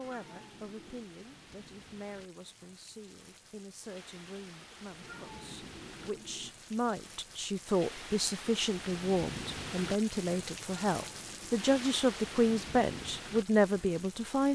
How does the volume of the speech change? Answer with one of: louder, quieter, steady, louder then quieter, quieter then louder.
louder.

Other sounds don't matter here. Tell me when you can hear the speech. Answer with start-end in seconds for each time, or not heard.
0.0-14.5.